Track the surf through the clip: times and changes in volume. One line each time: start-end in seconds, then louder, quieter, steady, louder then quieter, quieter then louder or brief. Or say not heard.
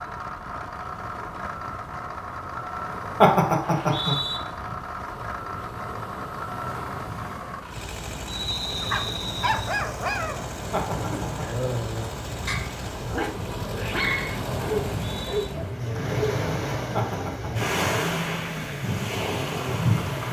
0.0-20.2 louder.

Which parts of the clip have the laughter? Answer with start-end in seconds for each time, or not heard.
3.2-4.2, 10.7-11.4, 16.9-17.7.